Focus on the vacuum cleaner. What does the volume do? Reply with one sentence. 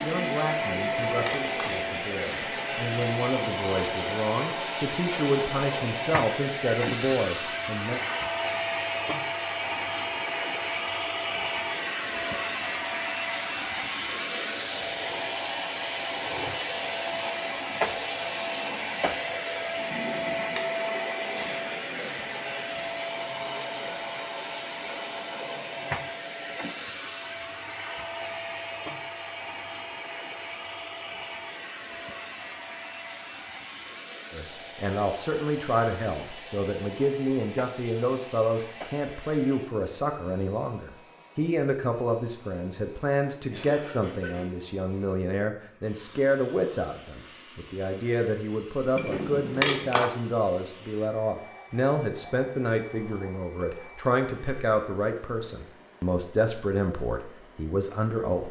The volume of the vacuum cleaner goes down.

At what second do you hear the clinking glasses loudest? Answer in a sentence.
The volume of the clinking glasses peaks at 50 seconds.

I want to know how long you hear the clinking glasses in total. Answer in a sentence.
You can hear the clinking glasses for 3 seconds altogether.